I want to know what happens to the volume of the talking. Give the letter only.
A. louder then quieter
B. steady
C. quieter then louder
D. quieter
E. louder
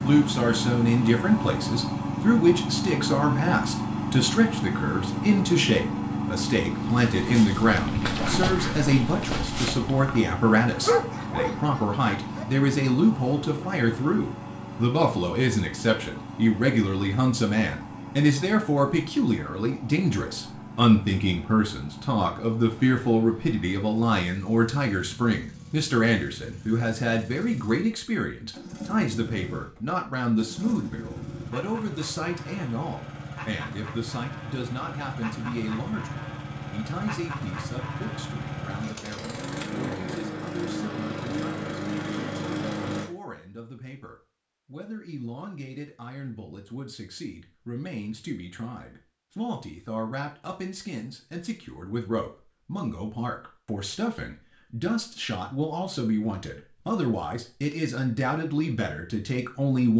C.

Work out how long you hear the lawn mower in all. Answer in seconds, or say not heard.
43 s.